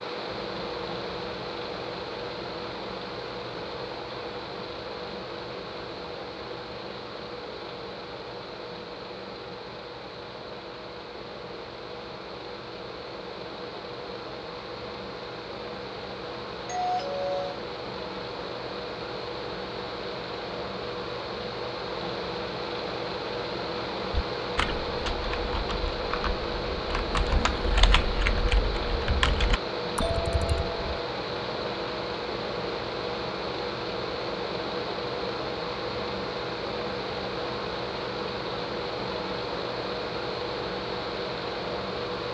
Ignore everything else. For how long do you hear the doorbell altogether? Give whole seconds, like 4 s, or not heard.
2 s.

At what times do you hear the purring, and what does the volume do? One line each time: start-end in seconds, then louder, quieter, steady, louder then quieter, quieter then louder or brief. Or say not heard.
not heard.